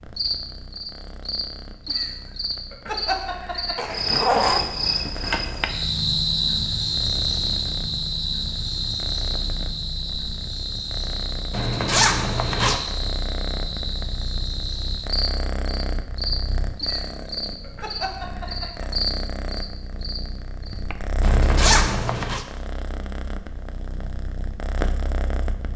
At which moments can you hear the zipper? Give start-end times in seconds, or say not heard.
3.8-5.7, 11.5-12.8, 21.2-22.4.